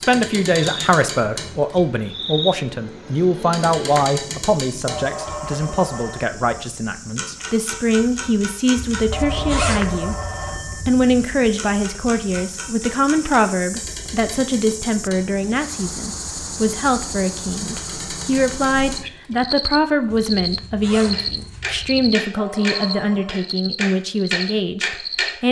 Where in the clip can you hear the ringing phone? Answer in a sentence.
The ringing phone can be heard from 4.8 to 6.3 s, from 9.1 to 10.8 s and from 22.4 to 23.4 s.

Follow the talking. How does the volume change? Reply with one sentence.
The volume of the talking stays about the same.